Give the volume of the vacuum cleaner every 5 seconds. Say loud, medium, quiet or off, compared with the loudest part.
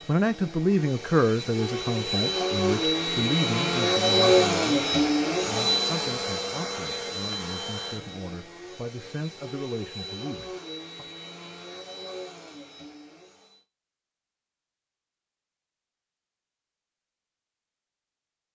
loud, medium, quiet, off.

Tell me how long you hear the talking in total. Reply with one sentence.
The talking can be heard for 11 seconds in total.